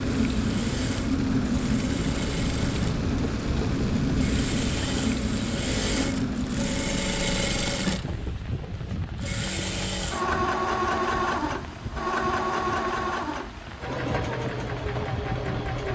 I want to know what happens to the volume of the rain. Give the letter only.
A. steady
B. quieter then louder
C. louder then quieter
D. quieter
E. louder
D.